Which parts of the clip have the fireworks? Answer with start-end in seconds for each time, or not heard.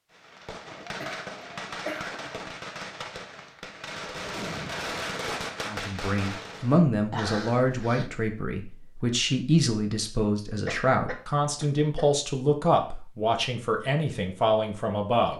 0.1-6.8.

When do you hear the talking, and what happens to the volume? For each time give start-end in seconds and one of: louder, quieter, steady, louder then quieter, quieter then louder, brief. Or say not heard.
5.7-15.3 steady.